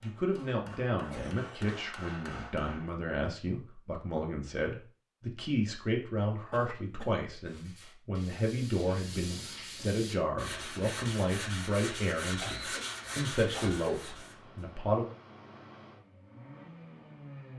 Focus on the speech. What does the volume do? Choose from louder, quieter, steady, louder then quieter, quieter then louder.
steady.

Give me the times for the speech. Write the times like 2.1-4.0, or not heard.
0.0-15.1.